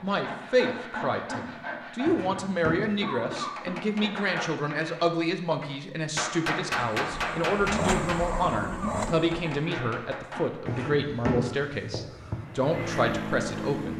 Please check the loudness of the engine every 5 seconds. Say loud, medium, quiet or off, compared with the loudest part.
off, loud, loud.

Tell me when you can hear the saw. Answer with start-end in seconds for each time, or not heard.
0.0-2.5.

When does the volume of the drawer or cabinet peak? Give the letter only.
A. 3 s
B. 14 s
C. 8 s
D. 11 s
D.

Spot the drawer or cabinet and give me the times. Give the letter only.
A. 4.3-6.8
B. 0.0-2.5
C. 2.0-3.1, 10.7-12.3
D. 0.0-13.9
C.